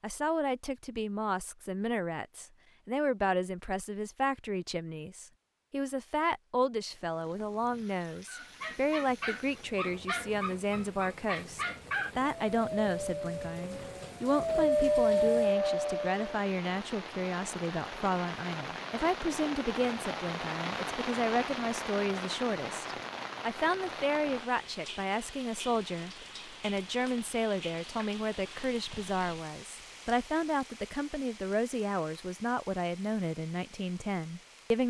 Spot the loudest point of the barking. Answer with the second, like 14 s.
15 s.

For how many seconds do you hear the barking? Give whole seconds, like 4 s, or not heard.
8 s.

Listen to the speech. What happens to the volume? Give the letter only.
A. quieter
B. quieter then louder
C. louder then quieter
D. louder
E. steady
E.